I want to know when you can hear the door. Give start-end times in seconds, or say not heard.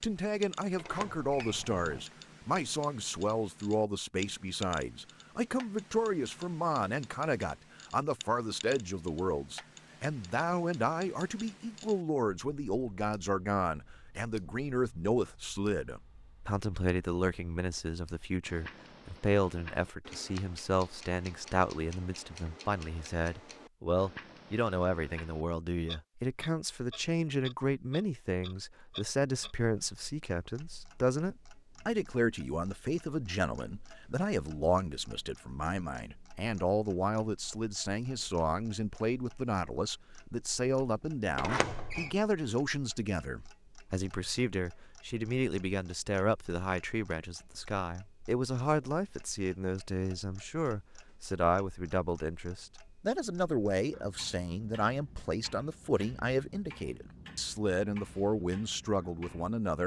0.8-2.0, 41.4-42.1.